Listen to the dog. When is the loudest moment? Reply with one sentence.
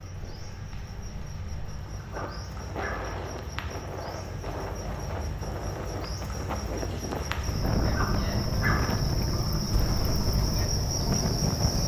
The loudest moment of the dog is at 9 seconds.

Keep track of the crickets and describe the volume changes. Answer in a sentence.
The loudness of the crickets goes up.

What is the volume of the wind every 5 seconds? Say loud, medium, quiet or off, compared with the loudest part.
medium, loud, loud.